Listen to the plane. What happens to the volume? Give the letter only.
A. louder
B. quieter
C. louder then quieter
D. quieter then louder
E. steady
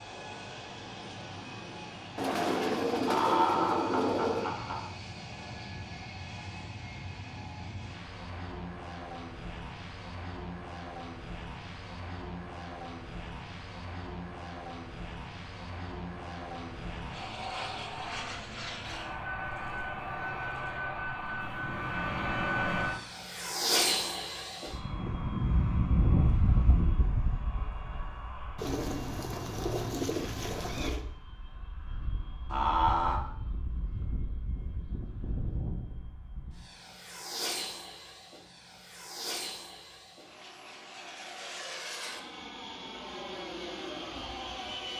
C.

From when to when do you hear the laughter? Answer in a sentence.
The laughter can be heard from 3.0 to 4.8 s and from 32.5 to 33.2 s.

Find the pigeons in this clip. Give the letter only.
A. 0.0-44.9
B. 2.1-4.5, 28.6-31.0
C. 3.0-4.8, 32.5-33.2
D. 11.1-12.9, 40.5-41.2
B.